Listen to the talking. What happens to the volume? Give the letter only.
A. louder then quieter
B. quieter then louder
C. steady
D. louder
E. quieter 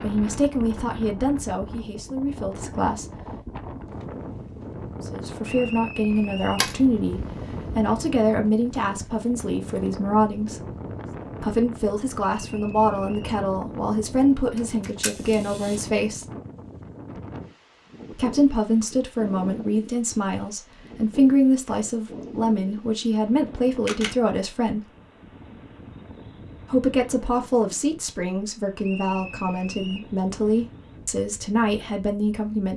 C.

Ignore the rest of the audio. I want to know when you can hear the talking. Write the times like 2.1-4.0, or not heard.
0.0-3.1, 5.0-10.7, 11.4-16.3, 18.1-24.9, 26.7-32.7.